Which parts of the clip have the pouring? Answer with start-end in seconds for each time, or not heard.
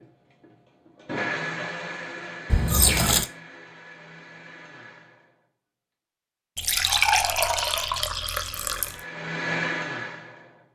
2.5-3.2, 6.5-9.0.